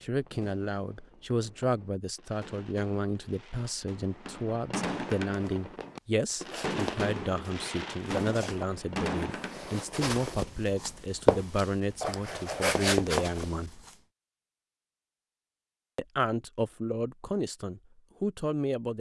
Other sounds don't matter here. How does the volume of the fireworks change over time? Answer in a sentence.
The loudness of the fireworks goes up.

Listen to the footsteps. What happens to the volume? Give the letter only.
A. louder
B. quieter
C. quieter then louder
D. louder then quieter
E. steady
A.